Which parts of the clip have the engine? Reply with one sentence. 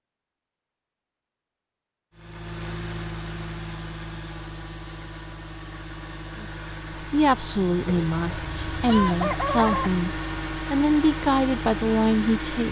The engine can be heard from 2.1 to 12.6 s.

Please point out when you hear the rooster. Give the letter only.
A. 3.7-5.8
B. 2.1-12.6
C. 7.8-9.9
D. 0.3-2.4
C.